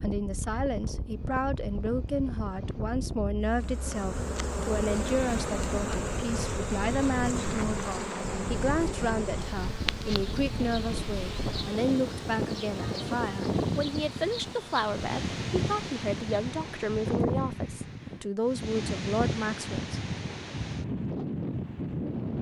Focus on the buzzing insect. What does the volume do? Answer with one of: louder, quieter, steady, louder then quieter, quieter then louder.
quieter.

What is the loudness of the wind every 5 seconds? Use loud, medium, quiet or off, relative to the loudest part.
medium, medium, loud, loud, loud.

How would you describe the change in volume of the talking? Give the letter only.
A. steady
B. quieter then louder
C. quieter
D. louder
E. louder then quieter
A.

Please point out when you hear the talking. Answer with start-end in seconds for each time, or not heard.
0.0-20.0.